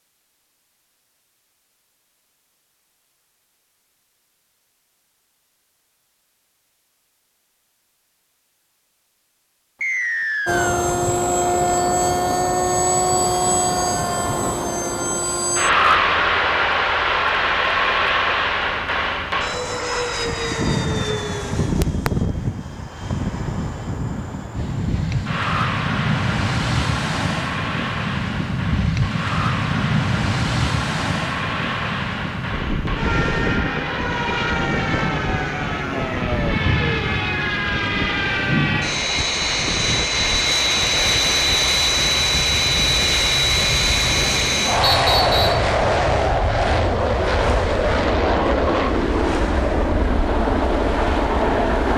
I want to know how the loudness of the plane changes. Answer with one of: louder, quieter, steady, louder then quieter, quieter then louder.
quieter then louder.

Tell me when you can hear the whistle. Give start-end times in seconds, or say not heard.
9.8-10.8, 44.8-45.6.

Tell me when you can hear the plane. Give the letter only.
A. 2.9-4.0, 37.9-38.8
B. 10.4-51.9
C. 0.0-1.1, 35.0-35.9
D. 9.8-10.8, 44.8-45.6
B.